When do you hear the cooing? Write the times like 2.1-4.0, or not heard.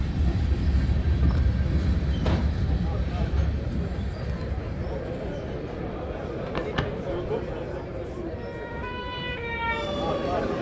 not heard.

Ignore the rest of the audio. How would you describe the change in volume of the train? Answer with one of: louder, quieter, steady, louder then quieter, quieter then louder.
quieter.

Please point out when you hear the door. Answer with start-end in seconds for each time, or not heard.
2.2-3.3, 6.5-7.0.